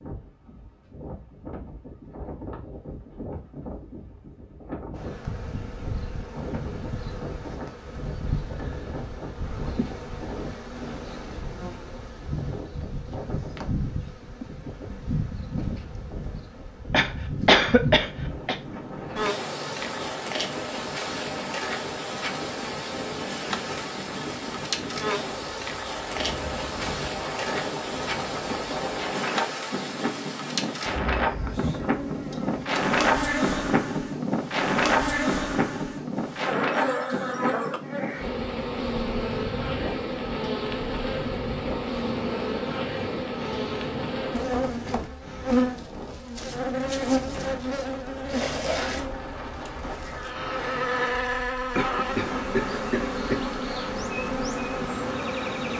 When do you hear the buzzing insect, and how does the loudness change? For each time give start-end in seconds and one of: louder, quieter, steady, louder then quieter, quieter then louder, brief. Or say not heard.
5.0-55.7 louder.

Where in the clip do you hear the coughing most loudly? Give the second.
18 s.